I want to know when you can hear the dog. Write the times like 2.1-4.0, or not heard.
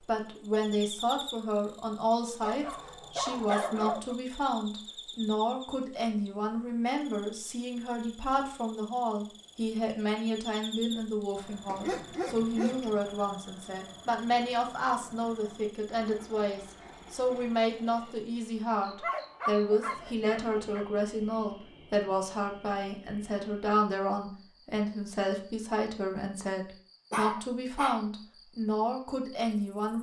2.4-4.2, 11.7-12.9, 19.0-20.9, 27.1-28.0.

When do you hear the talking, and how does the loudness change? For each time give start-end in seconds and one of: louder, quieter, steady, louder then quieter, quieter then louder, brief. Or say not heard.
0.1-29.9 steady.